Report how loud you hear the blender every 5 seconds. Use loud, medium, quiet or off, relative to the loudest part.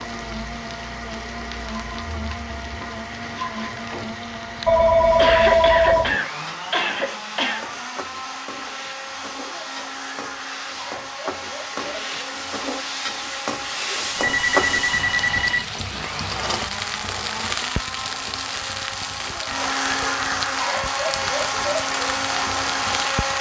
medium, medium, medium, medium, loud.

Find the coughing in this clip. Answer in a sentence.
The coughing can be heard from 5.2 to 7.7 s.